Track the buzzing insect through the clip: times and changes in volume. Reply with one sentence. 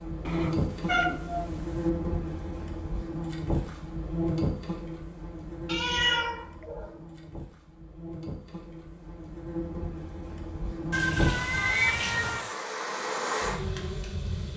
You can hear the buzzing insect from 0.0 to 14.5 s, getting quieter then louder.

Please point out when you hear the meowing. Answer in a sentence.
The meowing can be heard from 0.2 to 1.9 s, from 5.7 to 7.0 s and from 10.9 to 12.5 s.